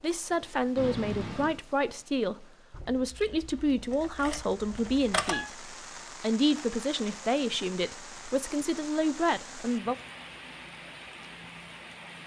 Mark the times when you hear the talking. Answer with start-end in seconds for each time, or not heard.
0.0-9.9.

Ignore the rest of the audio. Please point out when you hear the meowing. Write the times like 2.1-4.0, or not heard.
0.8-1.6.